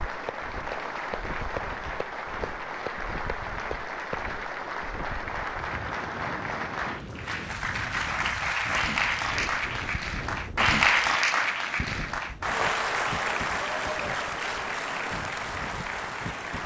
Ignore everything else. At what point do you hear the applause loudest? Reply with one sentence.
The loudest moment of the applause is at 11 seconds.